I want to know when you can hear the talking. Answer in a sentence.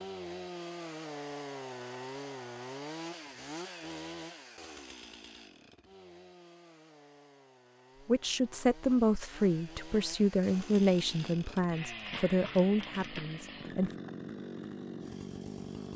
You can hear the talking from 8.1 to 13.9 s.